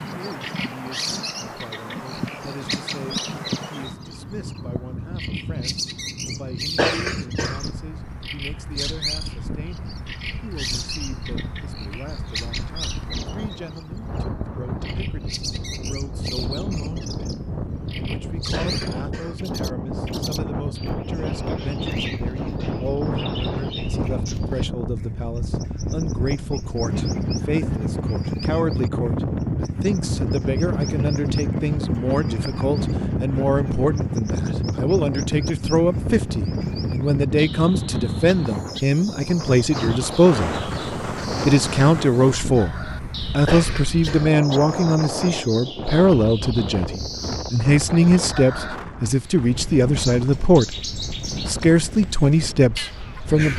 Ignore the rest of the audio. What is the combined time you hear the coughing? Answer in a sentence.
The coughing can be heard for 3 seconds in total.